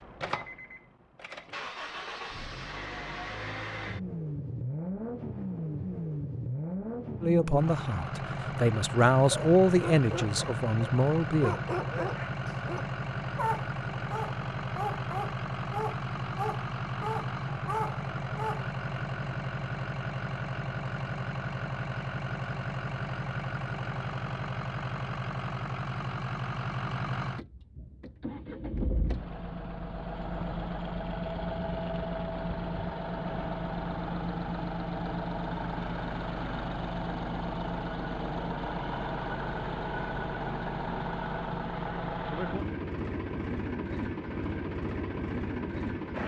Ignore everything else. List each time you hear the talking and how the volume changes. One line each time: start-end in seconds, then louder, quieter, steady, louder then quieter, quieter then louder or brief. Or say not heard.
7.2-11.6 louder then quieter.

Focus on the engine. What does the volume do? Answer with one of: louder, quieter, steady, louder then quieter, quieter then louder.
steady.